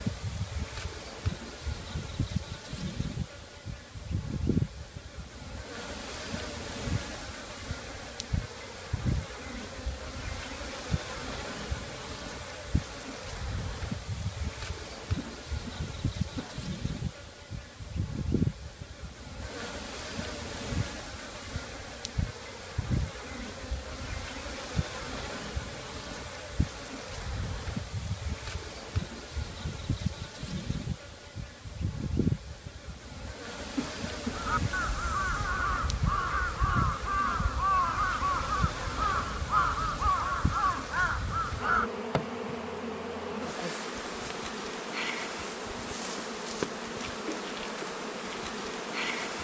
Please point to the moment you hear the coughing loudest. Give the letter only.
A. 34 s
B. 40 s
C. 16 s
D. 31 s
A.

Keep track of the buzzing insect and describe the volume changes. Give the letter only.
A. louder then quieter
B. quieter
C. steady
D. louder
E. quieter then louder
C.